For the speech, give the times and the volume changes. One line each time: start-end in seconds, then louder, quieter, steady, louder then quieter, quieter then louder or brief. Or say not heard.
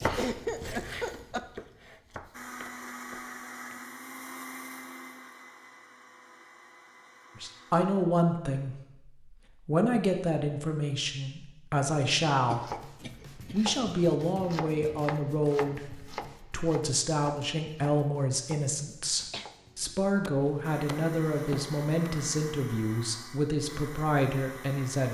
7.3-25.0 steady.